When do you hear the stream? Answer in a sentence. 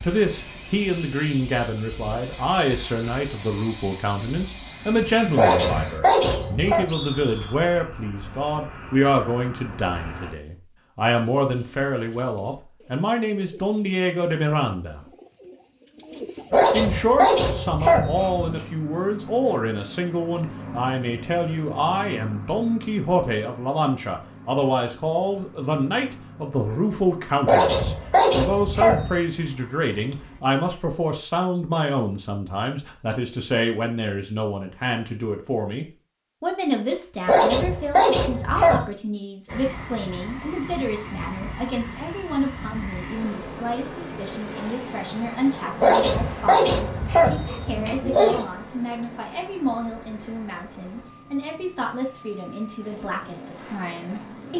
The stream can't be heard in this clip.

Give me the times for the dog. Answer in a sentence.
You can hear the dog from 5.3 to 6.8 s, from 16.5 to 18.6 s, from 27.4 to 29.2 s, from 37.2 to 38.9 s and from 45.8 to 48.5 s.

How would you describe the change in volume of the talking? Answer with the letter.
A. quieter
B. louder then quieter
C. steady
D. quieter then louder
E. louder
A.